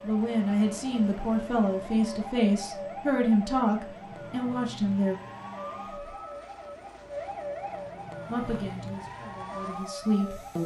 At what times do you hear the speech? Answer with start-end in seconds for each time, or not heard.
0.0-5.2, 8.2-10.6.